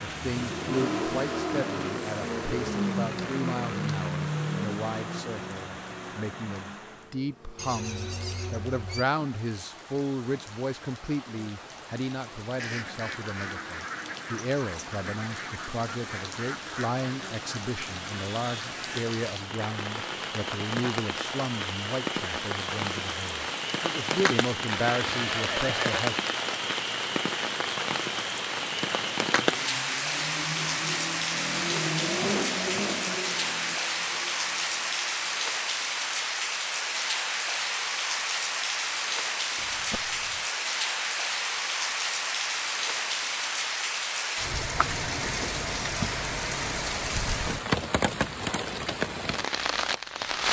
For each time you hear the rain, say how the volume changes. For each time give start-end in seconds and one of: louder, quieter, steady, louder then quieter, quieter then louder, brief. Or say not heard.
0.0-50.4 louder.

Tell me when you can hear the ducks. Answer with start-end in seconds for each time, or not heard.
12.6-19.1.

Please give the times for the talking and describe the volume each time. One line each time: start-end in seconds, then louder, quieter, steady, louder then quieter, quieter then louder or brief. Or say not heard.
0.0-26.2 steady.